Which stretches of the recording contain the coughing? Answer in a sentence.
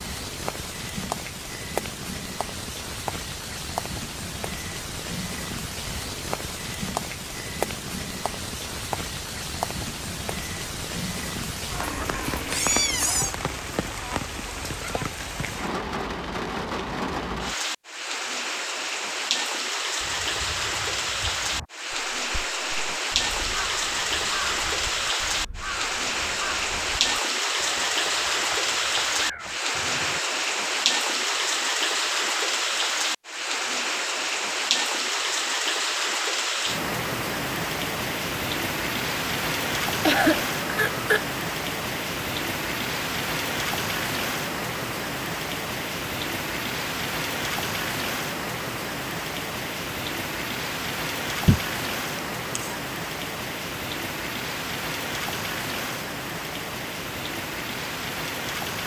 You can hear the coughing from 40.0 to 41.3 s.